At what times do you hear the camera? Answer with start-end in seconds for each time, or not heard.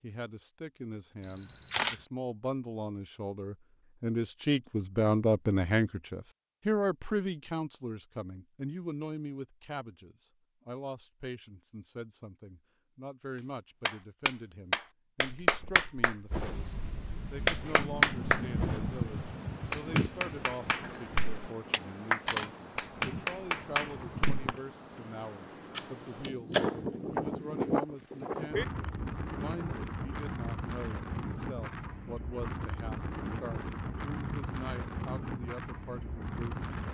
1.2-2.0, 21.8-22.5, 25.7-26.9.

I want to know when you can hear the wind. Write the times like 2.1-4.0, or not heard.
16.3-36.8.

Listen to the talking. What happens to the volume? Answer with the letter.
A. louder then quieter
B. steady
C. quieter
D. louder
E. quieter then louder
C.